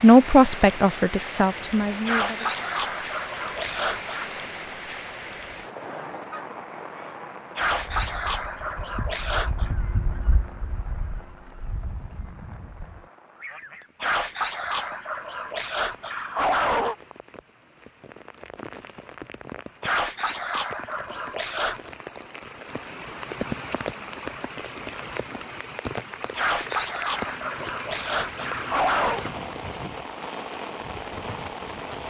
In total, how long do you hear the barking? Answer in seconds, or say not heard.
12 s.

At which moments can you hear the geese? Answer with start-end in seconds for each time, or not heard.
5.8-13.9.